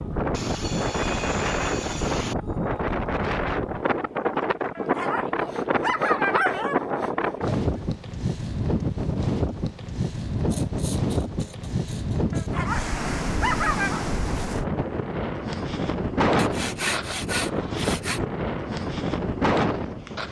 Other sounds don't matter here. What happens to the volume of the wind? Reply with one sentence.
The loudness of the wind stays about the same.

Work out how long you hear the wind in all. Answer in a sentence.
You can hear the wind for 20 seconds altogether.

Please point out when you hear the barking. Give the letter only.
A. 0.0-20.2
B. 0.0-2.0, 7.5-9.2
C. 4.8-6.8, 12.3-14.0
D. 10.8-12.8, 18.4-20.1
C.